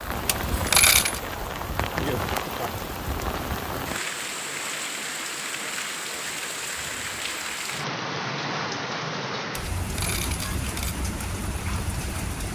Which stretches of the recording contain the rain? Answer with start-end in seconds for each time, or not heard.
0.0-12.4.